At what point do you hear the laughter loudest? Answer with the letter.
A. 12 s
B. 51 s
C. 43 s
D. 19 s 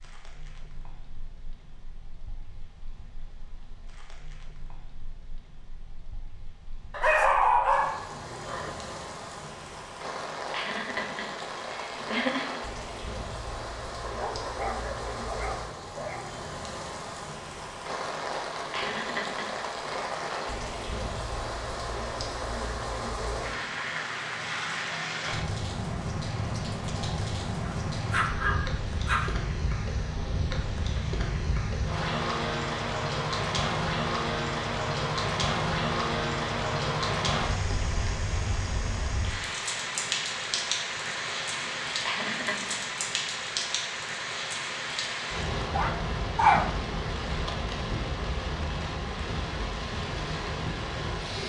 A.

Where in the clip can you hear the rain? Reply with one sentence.
You can hear the rain from 0.0 to 51.4 s.